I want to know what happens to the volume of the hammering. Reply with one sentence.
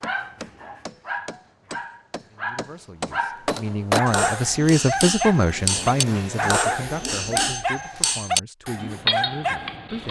The volume of the hammering goes up.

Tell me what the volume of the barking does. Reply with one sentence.
The loudness of the barking goes up.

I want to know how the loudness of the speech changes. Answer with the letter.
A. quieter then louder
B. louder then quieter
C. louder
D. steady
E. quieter
B.